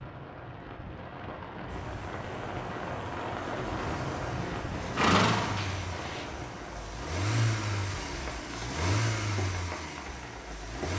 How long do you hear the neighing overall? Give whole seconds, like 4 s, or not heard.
2 s.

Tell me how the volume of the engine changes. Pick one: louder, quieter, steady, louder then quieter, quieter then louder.
louder.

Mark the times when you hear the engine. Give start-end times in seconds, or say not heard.
1.6-10.9.